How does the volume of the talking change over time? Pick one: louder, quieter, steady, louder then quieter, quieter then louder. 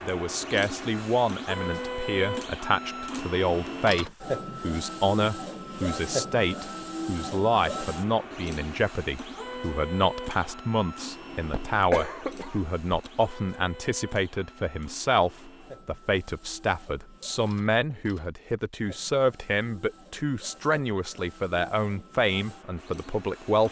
steady.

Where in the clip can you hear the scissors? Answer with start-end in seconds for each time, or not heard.
not heard.